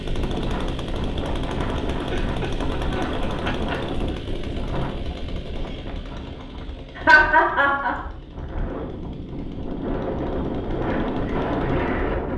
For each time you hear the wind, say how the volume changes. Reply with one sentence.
You can hear the wind from 0.0 to 12.3 s, getting quieter then louder.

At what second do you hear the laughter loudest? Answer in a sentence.
The loudest moment of the laughter is at 7 seconds.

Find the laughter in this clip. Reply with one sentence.
You can hear the laughter from 1.9 to 3.8 s and from 7.0 to 8.1 s.